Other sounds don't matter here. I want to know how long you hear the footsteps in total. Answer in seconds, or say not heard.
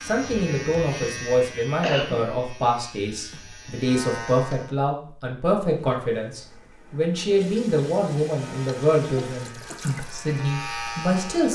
not heard.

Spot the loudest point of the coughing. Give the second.
2 s.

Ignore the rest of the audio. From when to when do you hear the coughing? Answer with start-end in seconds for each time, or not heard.
1.8-2.3, 9.2-9.8.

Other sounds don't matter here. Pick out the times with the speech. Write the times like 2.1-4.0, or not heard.
0.0-11.5.